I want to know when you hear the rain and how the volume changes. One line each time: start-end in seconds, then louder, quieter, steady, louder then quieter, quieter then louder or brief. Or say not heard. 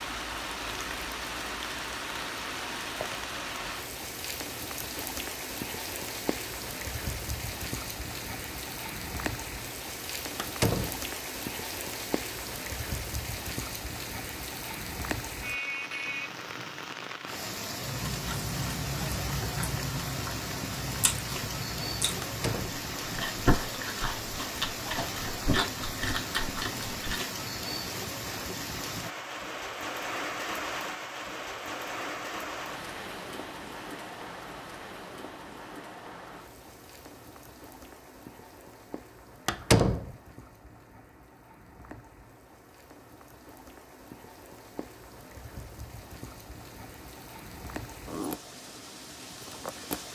0.0-50.0 quieter.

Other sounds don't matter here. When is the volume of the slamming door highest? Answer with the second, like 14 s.
40 s.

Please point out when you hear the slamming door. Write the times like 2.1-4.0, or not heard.
10.3-11.0, 22.2-22.9, 39.5-40.1.